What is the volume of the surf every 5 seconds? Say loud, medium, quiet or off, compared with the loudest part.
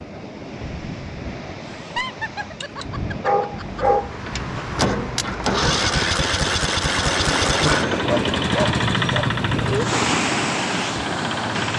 medium, loud, loud.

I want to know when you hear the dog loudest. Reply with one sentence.
The loudest moment of the dog is at 4 seconds.